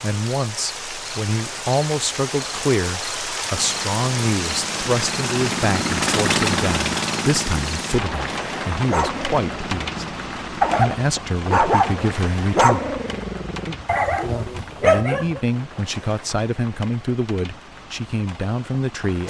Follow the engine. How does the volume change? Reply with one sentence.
The loudness of the engine goes up, then down.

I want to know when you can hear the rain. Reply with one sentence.
You can hear the rain from 0.0 to 19.2 s.